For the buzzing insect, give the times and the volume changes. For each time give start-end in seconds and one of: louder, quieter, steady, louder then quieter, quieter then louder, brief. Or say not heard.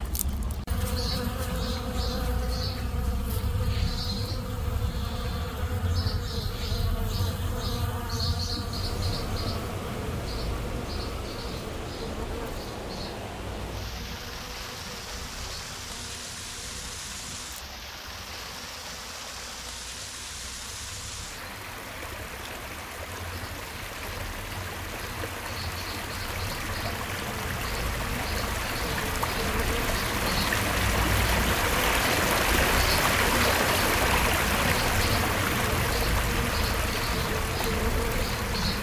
0.0-38.7 quieter then louder.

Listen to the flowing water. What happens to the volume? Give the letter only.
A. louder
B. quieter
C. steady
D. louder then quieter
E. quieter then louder
A.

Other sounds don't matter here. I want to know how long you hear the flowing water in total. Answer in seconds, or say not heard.
30 s.